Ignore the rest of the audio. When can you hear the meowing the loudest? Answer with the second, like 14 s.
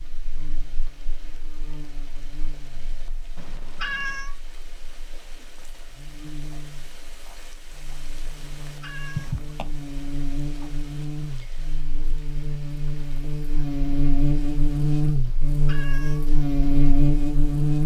4 s.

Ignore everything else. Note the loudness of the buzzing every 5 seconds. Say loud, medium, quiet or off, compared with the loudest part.
quiet, quiet, medium, loud.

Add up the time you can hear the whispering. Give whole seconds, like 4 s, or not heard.
not heard.